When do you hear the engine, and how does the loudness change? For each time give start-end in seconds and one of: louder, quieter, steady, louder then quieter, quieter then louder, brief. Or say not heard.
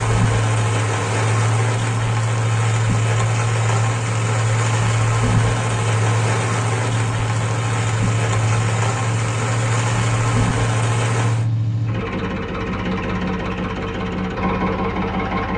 0.0-15.5 steady.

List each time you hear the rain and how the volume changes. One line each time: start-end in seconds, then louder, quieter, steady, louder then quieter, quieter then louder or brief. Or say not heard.
0.0-11.5 steady.